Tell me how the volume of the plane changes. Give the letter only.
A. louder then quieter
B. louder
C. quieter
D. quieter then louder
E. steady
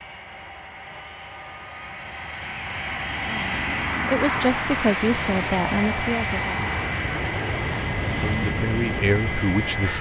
B.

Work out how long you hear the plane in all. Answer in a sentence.
The plane can be heard for 10 seconds in total.